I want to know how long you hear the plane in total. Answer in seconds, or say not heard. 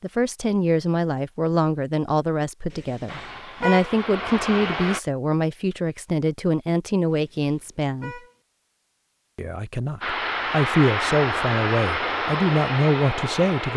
6 s.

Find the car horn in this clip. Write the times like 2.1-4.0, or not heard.
2.7-4.0, 7.1-8.3.